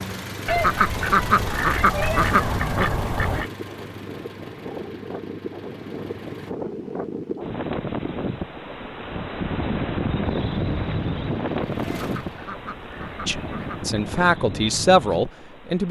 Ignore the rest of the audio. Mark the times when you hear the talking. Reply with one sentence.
You can hear the talking from 13.2 to 15.8 s.